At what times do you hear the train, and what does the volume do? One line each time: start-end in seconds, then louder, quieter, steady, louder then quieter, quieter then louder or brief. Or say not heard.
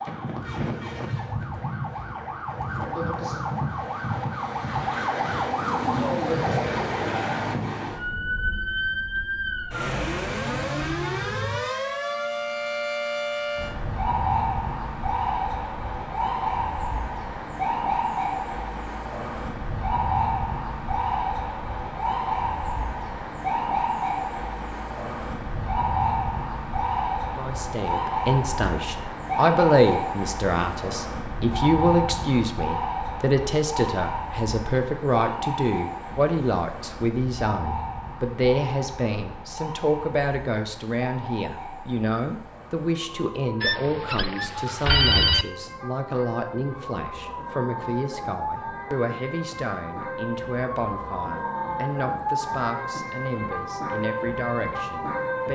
not heard.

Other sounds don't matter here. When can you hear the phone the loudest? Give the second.
45 s.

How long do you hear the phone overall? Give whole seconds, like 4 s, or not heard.
2 s.